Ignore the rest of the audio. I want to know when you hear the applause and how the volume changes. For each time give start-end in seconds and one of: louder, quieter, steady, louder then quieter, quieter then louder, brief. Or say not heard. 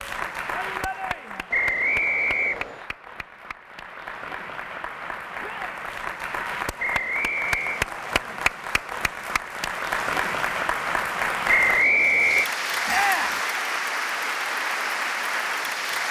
0.0-16.0 louder.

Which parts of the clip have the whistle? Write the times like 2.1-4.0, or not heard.
1.5-2.9, 6.8-7.8, 11.4-12.5.